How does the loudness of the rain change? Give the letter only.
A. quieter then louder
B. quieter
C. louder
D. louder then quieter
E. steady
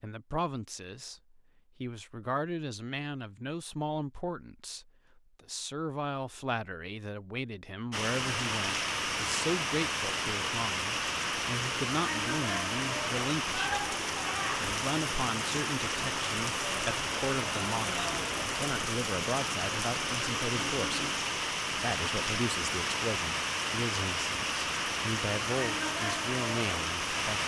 E.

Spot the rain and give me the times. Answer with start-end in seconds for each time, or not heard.
7.9-27.4.